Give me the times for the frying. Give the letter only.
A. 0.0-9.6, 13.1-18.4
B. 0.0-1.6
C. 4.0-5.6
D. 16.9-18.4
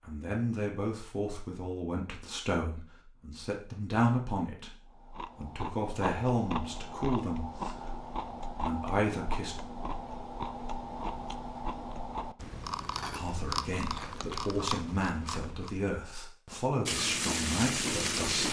D.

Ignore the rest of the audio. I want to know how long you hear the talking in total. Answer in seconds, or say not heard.
15 s.